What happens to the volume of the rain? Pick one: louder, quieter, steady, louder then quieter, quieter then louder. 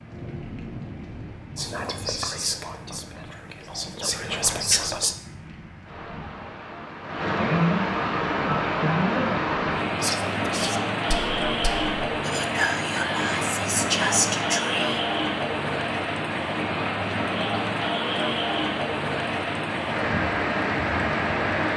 louder.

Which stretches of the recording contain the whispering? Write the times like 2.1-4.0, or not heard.
1.6-5.2, 10.0-15.1.